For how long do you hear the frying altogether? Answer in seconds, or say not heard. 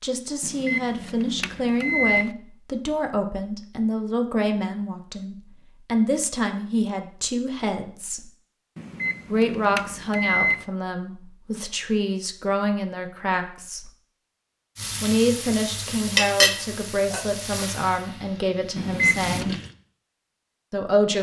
5 s.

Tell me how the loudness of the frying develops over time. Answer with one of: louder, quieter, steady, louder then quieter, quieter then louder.
louder then quieter.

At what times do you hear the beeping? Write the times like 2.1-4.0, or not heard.
0.4-2.3, 8.8-10.7, 18.8-19.6.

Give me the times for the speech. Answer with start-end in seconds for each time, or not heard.
0.0-8.3, 9.2-13.9, 15.0-19.6, 20.7-21.1.